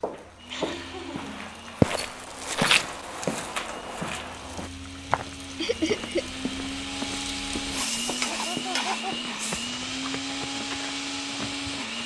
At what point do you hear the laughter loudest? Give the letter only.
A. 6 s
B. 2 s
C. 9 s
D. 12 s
A.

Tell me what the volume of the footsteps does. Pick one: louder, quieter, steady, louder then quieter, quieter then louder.
quieter.